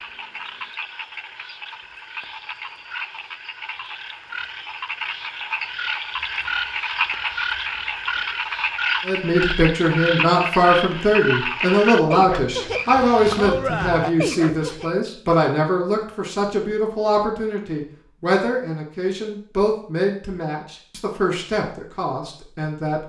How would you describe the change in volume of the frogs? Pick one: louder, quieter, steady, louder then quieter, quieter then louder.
louder.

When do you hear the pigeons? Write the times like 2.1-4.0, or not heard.
not heard.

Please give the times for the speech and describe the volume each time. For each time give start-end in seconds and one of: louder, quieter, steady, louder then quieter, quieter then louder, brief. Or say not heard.
9.1-23.0 quieter.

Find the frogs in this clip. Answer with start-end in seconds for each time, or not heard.
0.0-14.9.